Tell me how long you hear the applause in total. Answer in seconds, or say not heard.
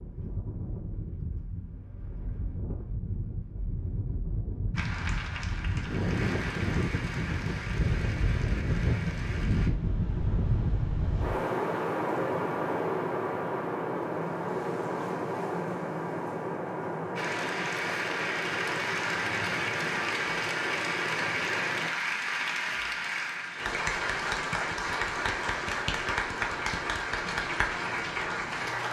17 s.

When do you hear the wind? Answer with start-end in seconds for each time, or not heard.
0.0-21.9.